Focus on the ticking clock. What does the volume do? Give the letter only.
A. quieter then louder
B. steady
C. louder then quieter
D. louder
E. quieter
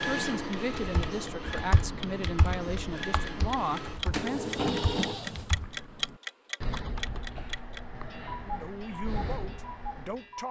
C.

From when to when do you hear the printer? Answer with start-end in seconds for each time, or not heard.
0.0-5.5.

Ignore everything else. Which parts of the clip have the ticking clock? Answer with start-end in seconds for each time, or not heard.
0.0-10.4.